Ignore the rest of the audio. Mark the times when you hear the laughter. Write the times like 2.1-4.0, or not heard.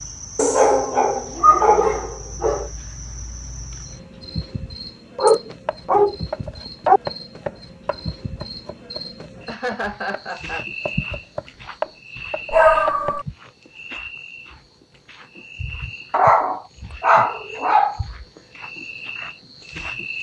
9.4-10.7.